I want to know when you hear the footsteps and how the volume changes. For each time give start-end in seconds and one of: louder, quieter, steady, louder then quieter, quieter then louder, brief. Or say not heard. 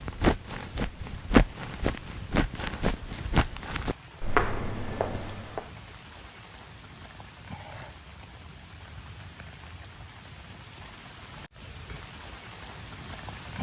0.0-5.7 quieter then louder.